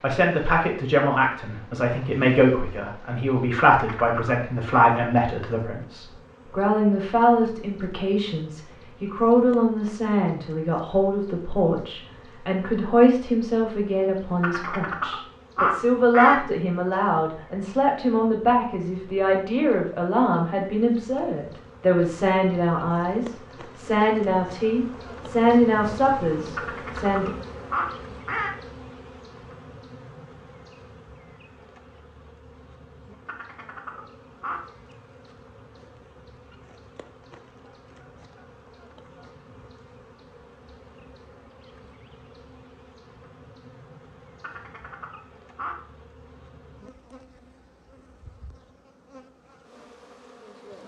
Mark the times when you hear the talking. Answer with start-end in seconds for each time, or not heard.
0.0-27.3.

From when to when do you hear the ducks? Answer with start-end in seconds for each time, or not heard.
3.8-4.9, 14.4-16.4, 26.6-28.5, 33.2-34.6, 44.4-45.8.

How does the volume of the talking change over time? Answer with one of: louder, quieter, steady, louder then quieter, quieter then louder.
steady.